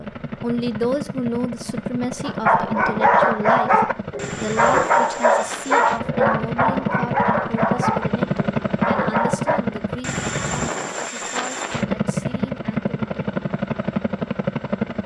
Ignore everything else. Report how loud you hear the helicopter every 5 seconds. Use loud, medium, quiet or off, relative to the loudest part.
medium, loud, loud.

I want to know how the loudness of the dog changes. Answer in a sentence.
The loudness of the dog goes down.